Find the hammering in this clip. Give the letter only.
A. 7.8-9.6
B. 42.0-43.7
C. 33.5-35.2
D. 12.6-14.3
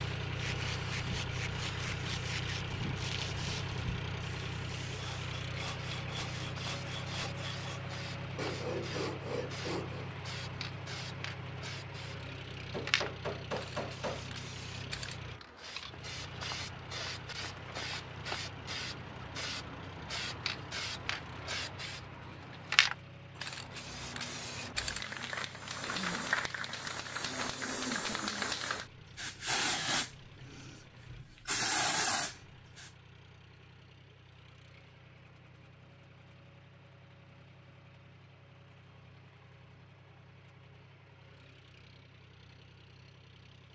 D.